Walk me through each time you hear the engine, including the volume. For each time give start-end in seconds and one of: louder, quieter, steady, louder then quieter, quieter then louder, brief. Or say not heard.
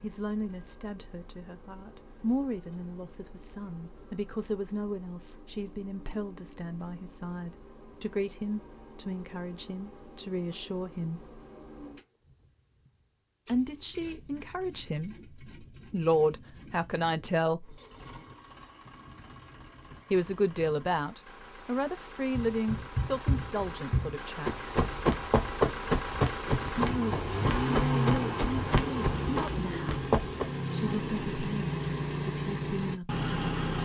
0.0-33.8 louder.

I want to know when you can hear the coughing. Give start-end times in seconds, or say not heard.
not heard.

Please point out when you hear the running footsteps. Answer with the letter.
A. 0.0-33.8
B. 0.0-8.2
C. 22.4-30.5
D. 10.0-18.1
C.